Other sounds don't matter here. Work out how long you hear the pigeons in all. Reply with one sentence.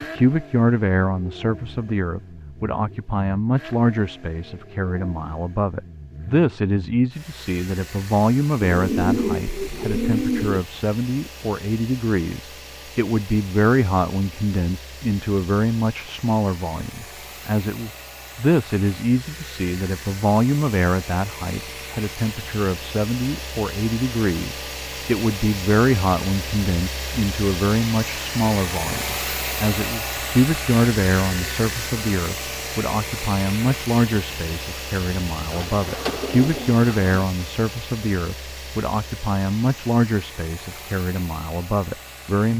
You can hear the pigeons for 4 seconds altogether.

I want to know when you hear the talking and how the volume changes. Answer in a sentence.
You can hear the talking from 0.0 to 42.5 s, at a steady volume.